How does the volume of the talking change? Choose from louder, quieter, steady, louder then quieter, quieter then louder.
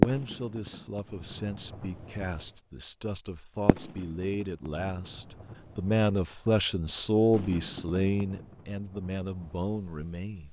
louder then quieter.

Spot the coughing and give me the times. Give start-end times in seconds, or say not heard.
not heard.